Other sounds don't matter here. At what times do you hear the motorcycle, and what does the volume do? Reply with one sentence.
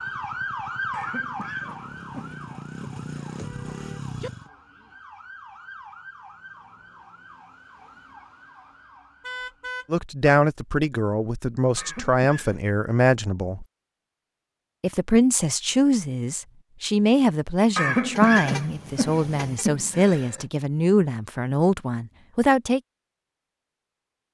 You can hear the motorcycle from 0.0 to 4.5 s, getting louder.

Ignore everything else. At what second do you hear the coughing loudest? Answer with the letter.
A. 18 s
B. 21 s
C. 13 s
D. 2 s
A.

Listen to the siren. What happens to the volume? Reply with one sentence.
The volume of the siren goes down.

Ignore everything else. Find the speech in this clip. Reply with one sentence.
You can hear the speech from 9.9 to 13.7 s and from 14.8 to 22.8 s.